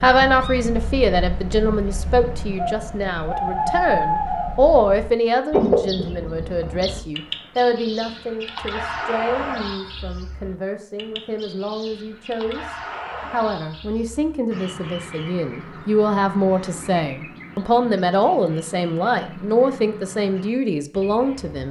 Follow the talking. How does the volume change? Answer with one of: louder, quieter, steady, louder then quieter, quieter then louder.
quieter then louder.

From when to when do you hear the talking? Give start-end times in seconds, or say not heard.
0.0-21.6.